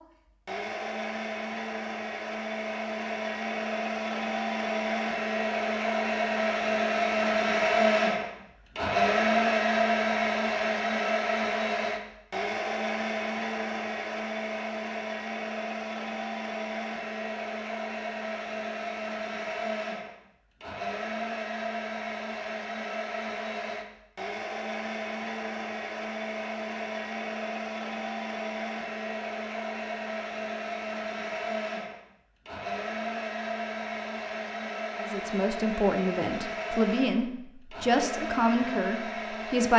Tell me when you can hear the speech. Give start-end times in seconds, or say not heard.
35.0-39.7.